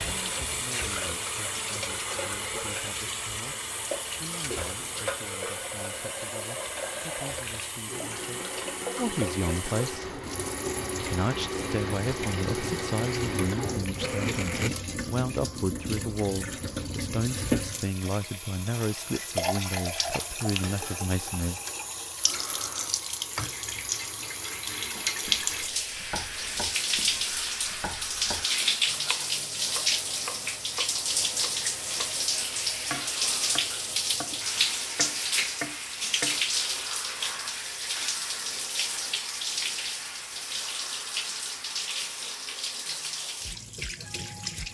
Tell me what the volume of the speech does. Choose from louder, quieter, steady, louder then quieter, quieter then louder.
louder.